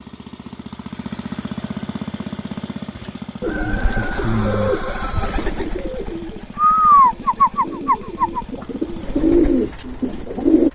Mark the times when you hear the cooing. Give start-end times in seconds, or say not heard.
3.4-10.6.